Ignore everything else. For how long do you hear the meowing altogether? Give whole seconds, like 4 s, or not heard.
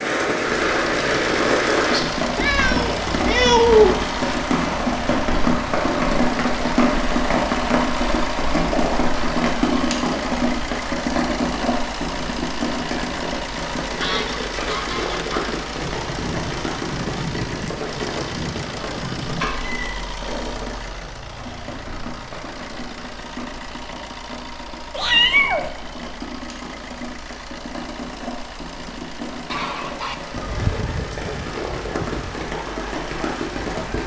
3 s.